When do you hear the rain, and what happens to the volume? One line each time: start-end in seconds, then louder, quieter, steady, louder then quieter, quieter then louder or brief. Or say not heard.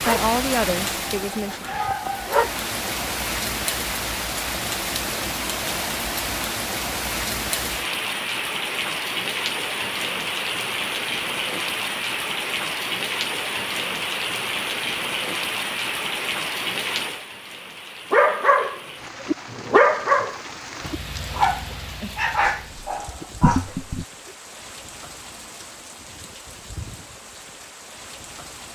0.0-28.7 quieter.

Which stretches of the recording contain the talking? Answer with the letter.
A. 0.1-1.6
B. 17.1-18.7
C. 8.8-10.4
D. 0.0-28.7
A.